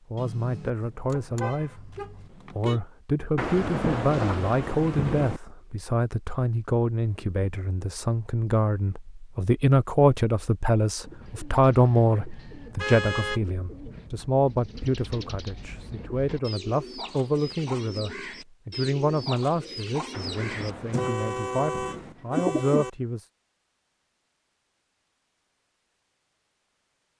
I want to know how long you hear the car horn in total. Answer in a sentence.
You can hear the car horn for 5 seconds altogether.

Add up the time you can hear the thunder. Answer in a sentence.
The thunder can be heard for 4 seconds in total.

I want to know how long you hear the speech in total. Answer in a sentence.
The speech can be heard for 23 seconds in total.